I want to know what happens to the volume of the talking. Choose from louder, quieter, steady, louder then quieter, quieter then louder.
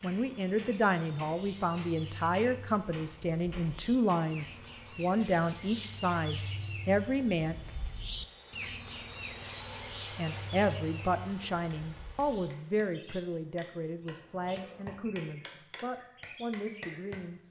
quieter.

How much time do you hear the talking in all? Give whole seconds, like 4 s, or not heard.
15 s.